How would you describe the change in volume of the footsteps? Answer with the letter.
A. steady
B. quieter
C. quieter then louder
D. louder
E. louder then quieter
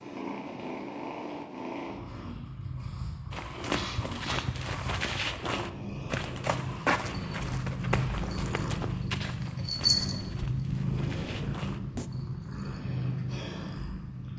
B.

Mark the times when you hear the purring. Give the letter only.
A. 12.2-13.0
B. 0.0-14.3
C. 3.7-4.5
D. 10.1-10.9
B.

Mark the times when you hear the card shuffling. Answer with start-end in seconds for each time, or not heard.
not heard.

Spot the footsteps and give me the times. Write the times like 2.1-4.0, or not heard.
3.3-12.1.